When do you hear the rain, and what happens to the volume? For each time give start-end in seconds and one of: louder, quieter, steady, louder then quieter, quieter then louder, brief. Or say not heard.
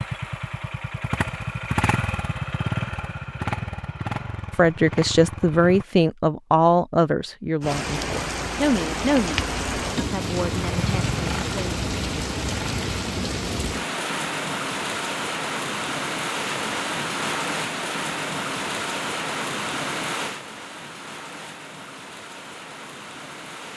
7.6-23.7 quieter.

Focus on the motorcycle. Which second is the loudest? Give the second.
2 s.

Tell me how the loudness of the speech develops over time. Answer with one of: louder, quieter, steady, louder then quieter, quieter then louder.
quieter.